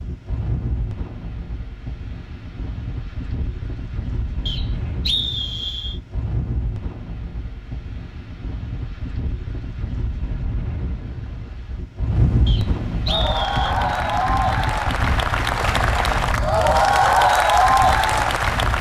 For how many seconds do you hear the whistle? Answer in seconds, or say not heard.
3 s.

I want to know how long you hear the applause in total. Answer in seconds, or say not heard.
6 s.